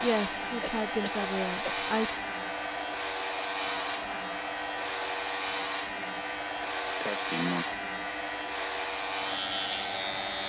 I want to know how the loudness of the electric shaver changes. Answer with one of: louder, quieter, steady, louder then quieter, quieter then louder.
steady.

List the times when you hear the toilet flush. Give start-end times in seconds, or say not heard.
not heard.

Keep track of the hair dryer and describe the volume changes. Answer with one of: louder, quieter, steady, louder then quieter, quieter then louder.
steady.